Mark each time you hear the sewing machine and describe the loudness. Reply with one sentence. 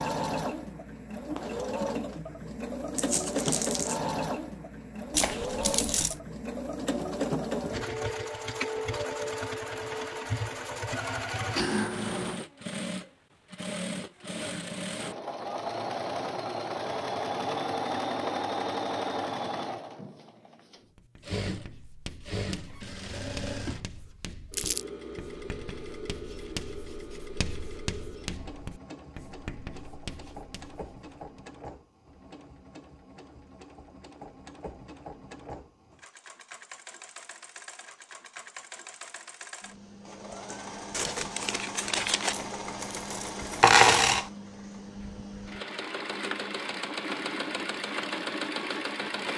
You can hear the sewing machine from 0.0 to 49.3 s, getting quieter then louder.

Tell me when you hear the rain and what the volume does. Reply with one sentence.
You can't hear the rain here.